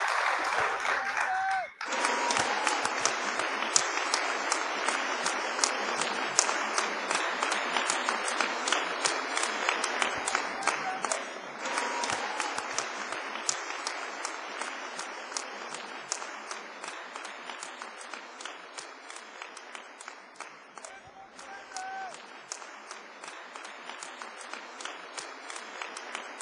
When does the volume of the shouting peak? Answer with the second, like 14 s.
1 s.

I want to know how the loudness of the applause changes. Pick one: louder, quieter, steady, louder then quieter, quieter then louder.
quieter.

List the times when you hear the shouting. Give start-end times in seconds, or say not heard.
0.4-1.7, 9.9-10.8, 20.9-22.1.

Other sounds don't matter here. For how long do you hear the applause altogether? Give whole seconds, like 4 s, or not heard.
26 s.